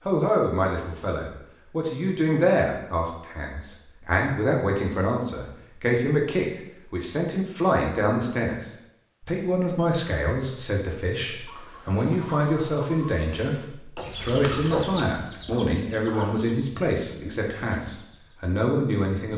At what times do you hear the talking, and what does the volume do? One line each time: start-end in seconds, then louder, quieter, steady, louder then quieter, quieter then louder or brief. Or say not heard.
0.1-19.3 steady.